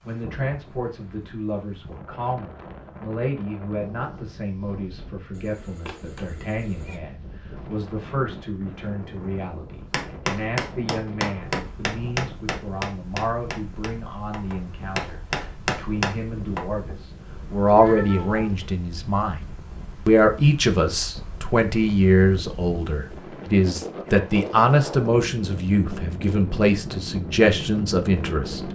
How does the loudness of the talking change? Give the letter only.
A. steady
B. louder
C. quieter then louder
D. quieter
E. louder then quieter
B.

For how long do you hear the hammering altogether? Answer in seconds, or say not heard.
7 s.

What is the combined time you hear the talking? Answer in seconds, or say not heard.
28 s.